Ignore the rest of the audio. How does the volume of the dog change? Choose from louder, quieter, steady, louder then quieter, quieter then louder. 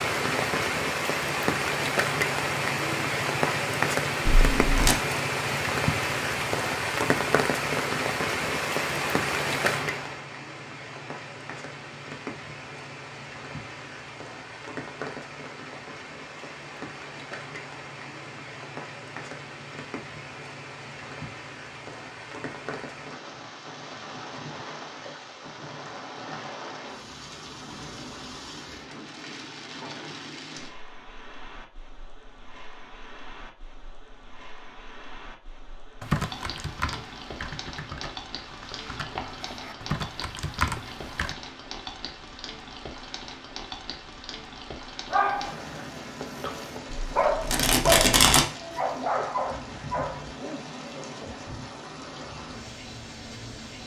louder then quieter.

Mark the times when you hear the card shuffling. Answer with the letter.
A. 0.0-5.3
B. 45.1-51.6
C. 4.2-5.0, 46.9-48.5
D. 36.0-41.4
C.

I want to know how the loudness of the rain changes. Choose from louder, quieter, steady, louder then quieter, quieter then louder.
quieter.